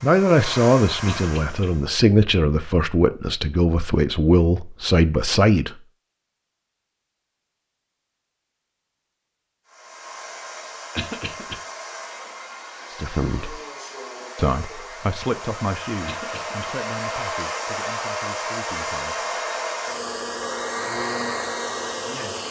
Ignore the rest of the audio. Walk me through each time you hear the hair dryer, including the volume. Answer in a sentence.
You can hear the hair dryer briefly from 0.0 to 1.9 s; and from 9.7 to 22.4 s, getting louder.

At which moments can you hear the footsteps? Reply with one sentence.
The footsteps can't be heard in this clip.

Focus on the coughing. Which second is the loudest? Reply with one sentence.
The volume of the coughing peaks at 11 seconds.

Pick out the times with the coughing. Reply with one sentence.
You can hear the coughing from 1.1 to 1.7 s, from 10.9 to 11.6 s and from 16.1 to 16.6 s.